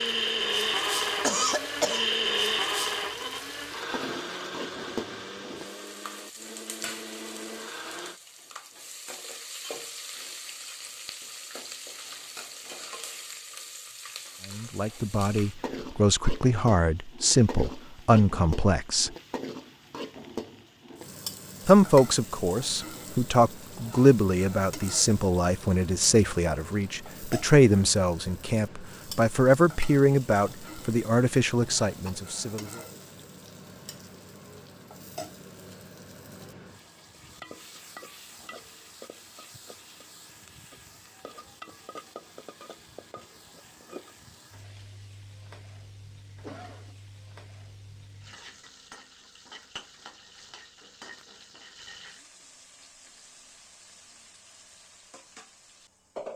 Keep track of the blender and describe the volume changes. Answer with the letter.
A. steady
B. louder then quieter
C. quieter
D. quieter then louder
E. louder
C.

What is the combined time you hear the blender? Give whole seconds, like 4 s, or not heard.
8 s.